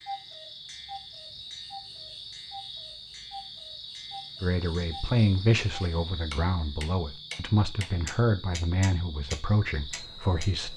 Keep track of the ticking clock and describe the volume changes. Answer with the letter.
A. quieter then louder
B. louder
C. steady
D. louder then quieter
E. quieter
A.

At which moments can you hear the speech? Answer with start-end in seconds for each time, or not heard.
4.4-10.7.